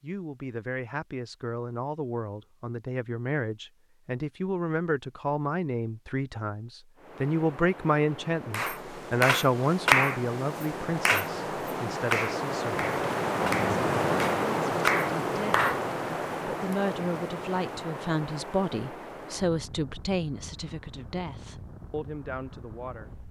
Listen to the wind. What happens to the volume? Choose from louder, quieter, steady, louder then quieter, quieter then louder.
louder then quieter.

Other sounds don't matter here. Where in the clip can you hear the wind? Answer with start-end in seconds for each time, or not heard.
7.0-23.2.